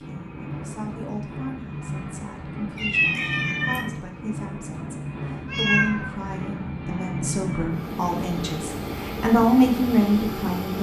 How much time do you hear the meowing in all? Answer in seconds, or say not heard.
2 s.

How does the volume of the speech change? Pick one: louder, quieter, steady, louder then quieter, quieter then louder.
louder.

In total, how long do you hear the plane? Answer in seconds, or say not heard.
11 s.